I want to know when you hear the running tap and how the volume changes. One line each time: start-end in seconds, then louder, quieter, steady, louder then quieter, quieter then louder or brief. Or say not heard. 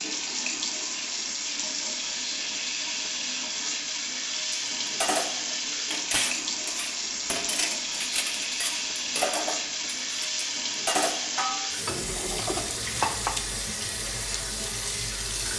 0.0-15.5 steady.